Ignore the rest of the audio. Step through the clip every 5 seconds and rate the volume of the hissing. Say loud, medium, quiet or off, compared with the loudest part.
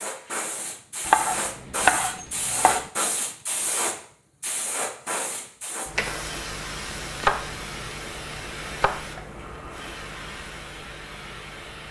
loud, loud, medium.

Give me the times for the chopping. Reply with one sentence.
You can hear the chopping from 1.1 to 2.9 s and from 6.8 to 9.2 s.